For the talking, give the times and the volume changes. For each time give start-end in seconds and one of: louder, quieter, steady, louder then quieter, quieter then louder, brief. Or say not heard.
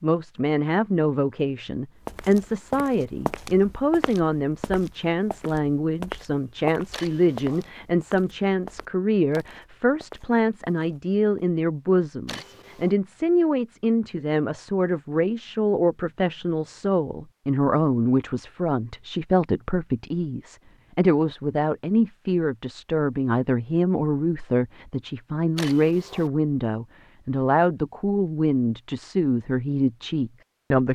0.0-30.8 steady.